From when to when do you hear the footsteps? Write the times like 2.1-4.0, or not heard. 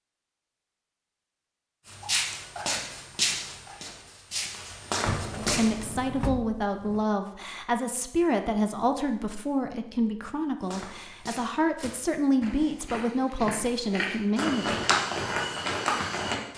1.9-5.8, 10.6-16.5.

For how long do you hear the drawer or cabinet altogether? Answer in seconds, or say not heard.
2 s.